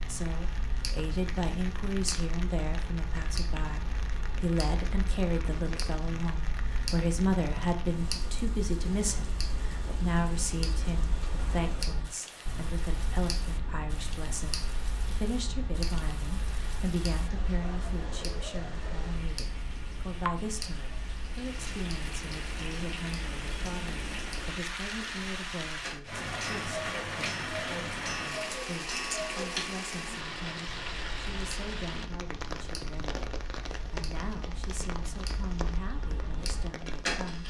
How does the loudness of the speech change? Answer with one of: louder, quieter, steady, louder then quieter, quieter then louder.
quieter.